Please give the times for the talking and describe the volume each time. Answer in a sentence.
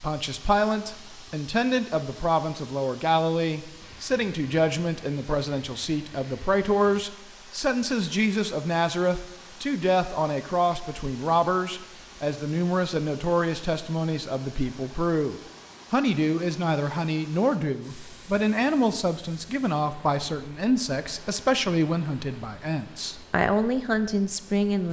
The talking can be heard from 0.0 to 24.8 s, at a steady volume.